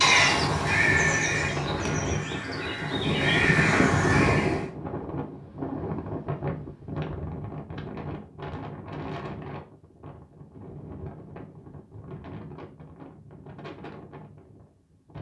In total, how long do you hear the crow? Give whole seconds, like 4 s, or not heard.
5 s.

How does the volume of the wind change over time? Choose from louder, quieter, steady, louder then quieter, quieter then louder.
quieter.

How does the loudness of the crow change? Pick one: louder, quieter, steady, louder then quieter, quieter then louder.
quieter then louder.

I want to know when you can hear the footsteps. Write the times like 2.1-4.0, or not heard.
not heard.